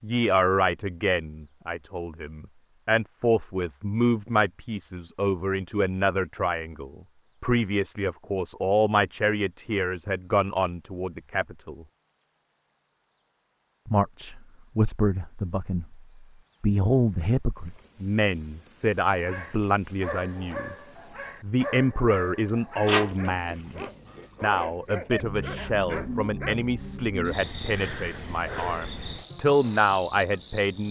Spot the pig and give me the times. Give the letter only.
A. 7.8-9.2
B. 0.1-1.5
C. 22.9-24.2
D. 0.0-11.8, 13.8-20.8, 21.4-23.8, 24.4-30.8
C.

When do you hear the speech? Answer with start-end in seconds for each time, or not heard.
0.0-11.8, 13.8-20.8, 21.4-23.8, 24.4-30.8.